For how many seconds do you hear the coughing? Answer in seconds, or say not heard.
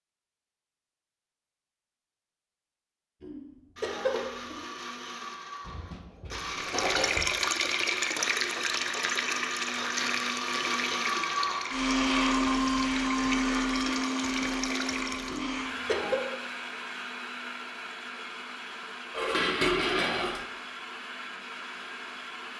2 s.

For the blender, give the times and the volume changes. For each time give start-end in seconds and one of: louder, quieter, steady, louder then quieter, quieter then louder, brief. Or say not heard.
3.8-22.5 louder then quieter.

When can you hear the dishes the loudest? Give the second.
20 s.